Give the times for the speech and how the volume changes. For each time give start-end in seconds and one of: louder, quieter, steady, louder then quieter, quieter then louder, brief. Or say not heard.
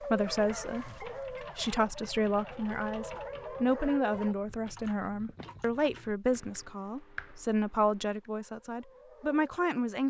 0.0-10.0 steady.